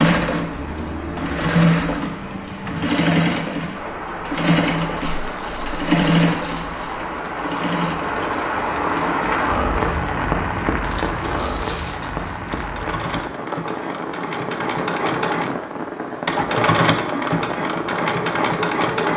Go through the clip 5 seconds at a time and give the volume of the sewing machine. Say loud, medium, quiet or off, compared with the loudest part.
loud, loud, medium, loud.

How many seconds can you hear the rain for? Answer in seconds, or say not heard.
19 s.